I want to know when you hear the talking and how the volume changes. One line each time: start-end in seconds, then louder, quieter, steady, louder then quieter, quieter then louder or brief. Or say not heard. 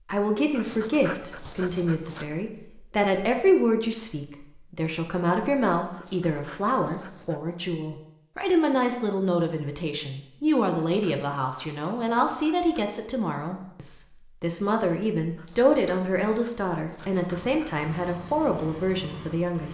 0.1-19.6 steady.